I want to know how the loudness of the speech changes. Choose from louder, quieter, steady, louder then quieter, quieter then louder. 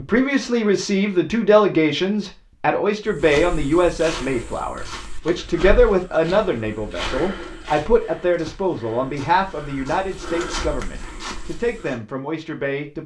quieter.